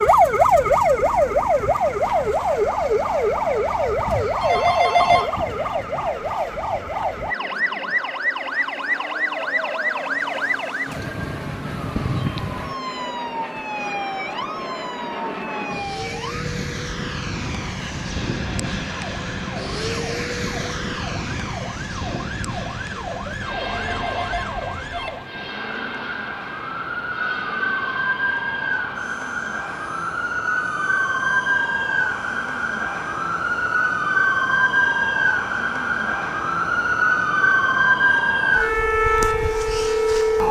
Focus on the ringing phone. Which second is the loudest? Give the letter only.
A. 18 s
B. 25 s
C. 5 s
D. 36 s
C.